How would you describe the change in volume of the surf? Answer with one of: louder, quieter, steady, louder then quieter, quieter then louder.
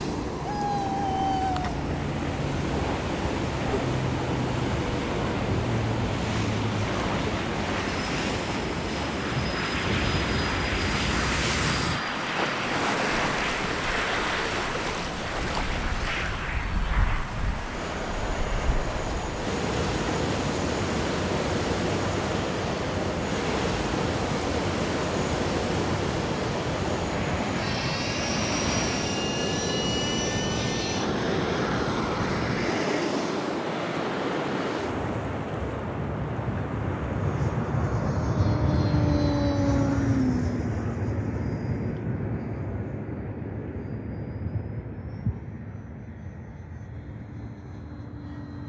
steady.